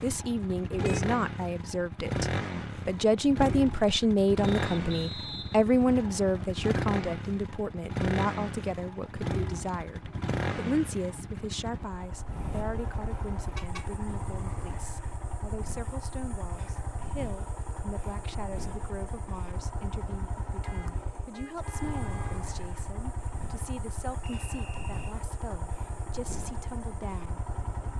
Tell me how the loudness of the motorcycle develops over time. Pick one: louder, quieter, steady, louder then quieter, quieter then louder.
quieter.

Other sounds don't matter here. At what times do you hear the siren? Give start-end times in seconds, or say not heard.
not heard.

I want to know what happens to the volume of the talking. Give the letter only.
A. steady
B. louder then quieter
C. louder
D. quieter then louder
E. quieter
E.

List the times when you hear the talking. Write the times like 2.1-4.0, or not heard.
0.0-27.4.